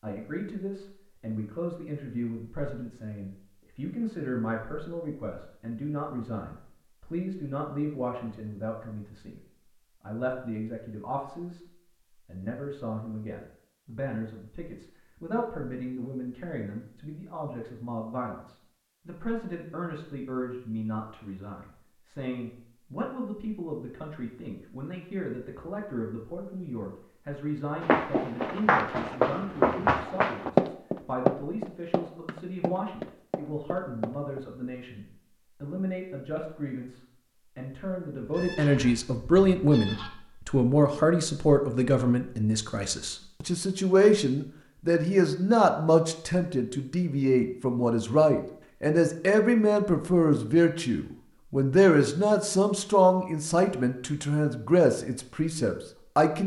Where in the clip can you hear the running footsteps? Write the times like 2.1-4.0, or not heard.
27.8-34.4.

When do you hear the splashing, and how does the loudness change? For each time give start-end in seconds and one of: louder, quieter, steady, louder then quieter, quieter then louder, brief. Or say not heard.
not heard.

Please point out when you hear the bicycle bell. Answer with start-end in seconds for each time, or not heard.
not heard.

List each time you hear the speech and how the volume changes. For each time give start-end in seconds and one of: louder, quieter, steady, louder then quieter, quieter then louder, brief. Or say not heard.
0.0-9.4 steady
10.0-56.4 louder.